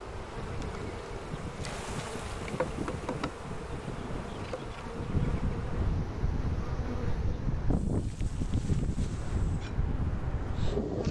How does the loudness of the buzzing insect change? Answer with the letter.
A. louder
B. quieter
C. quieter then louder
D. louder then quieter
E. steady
B.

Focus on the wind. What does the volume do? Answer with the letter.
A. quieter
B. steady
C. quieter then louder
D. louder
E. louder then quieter
D.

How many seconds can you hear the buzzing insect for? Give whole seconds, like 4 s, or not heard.
11 s.